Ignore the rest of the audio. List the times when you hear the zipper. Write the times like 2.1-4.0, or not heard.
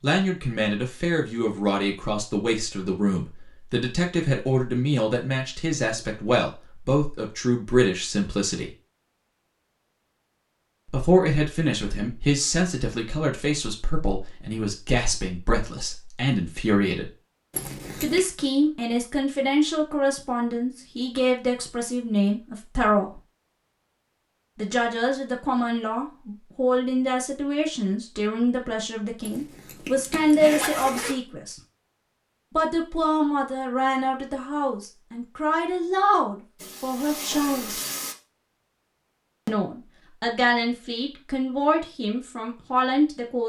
17.5-18.2, 29.2-31.1.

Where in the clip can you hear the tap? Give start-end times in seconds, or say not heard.
36.5-38.1.